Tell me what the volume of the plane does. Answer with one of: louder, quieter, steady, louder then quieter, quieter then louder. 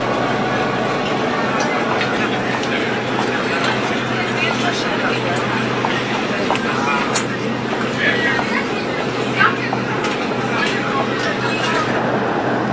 steady.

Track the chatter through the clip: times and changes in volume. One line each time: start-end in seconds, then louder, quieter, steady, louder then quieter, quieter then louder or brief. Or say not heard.
0.0-12.6 steady.